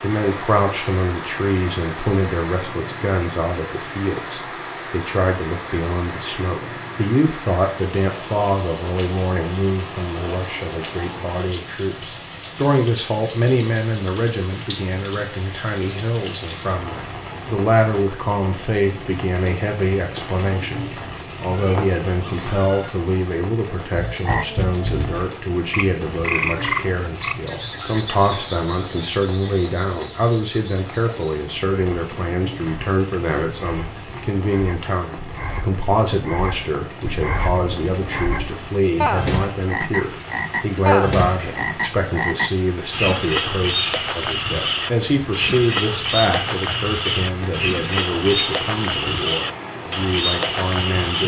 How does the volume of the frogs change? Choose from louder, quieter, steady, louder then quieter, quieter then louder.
quieter then louder.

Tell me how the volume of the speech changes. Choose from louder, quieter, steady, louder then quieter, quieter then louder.
steady.